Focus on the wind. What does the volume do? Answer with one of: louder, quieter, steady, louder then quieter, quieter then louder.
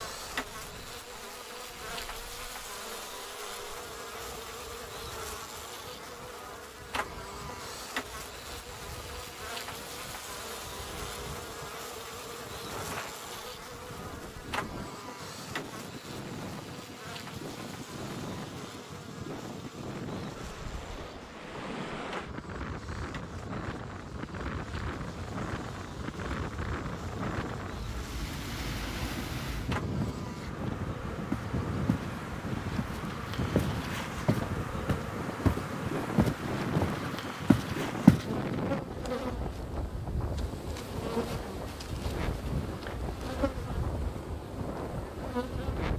louder.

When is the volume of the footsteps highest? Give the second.
38 s.